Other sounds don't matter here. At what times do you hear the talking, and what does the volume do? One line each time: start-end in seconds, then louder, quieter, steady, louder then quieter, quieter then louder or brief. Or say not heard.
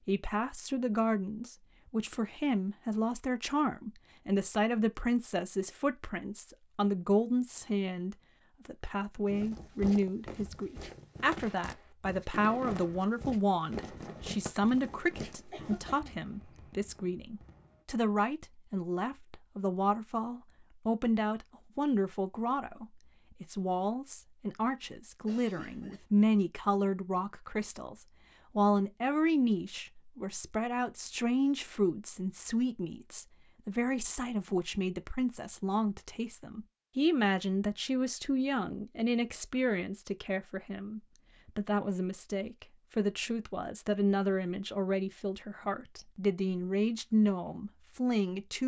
0.1-48.6 steady.